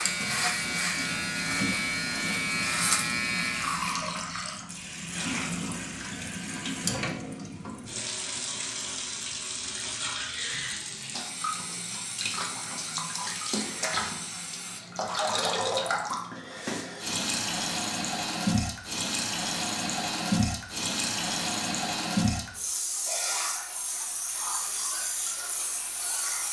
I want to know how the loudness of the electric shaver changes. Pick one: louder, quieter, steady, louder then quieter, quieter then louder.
steady.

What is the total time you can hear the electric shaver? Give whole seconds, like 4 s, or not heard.
4 s.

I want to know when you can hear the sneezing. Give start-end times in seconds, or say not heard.
not heard.